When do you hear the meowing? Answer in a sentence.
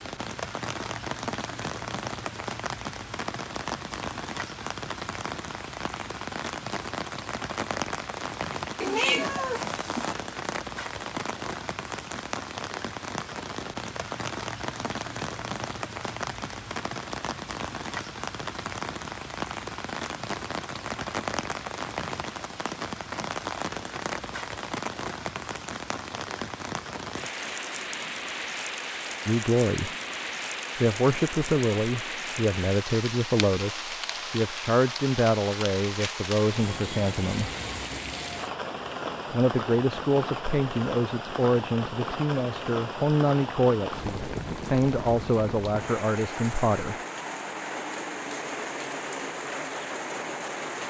You can hear the meowing from 8.8 to 10.2 s.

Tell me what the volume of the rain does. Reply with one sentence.
The volume of the rain stays about the same.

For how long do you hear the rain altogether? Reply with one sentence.
You can hear the rain for 51 seconds altogether.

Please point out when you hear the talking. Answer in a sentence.
You can hear the talking from 29.2 to 29.9 s, from 30.8 to 37.5 s and from 39.3 to 47.0 s.